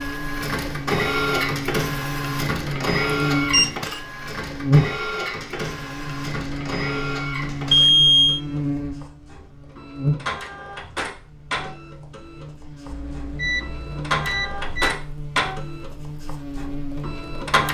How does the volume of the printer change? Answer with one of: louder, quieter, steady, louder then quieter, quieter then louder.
quieter then louder.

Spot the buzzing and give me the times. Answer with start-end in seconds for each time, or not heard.
0.0-17.6.